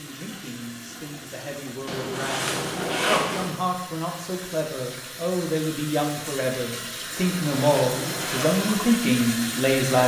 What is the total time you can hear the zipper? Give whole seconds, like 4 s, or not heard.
3 s.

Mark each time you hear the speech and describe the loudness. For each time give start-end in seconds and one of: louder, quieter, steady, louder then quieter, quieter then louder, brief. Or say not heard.
0.0-10.0 louder.